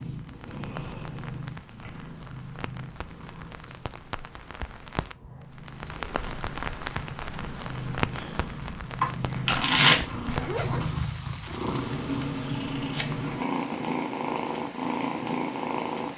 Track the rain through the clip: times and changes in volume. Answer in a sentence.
You can hear the rain from 0.0 to 16.1 s, getting louder then quieter.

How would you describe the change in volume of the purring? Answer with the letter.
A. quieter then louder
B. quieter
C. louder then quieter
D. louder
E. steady
A.